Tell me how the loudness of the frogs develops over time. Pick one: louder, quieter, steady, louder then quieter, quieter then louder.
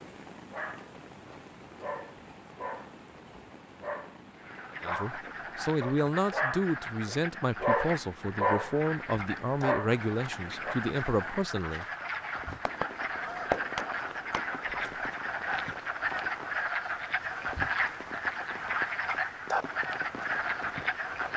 louder.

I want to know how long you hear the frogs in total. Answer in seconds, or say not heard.
17 s.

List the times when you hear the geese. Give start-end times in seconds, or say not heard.
12.7-15.0.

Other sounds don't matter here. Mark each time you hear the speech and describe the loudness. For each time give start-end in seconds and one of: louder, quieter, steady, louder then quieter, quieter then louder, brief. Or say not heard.
4.8-11.8 steady.